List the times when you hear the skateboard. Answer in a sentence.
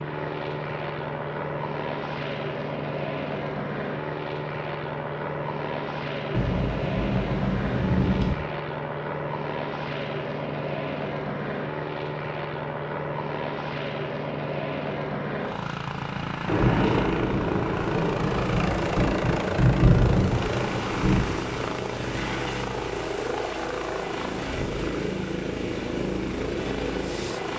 The skateboard can't be heard in this clip.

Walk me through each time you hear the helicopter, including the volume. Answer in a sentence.
You can hear the helicopter from 0.0 to 27.5 s, at a steady volume.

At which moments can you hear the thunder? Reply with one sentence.
You can hear the thunder from 6.3 to 8.3 s and from 16.4 to 21.4 s.